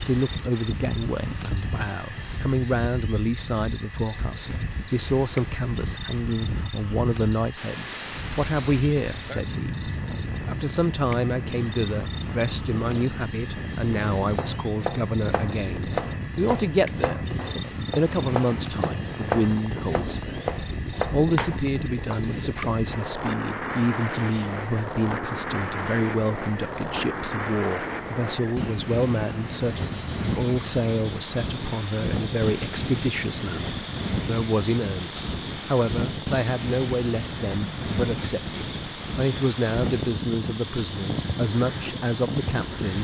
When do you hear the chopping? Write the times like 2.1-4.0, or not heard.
14.3-22.2.